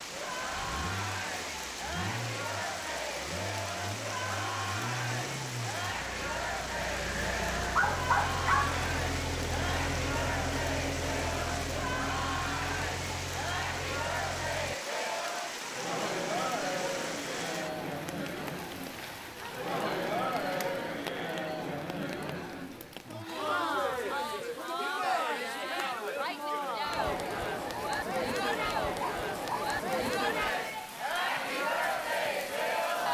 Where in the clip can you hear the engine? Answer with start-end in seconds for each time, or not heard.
0.0-14.8.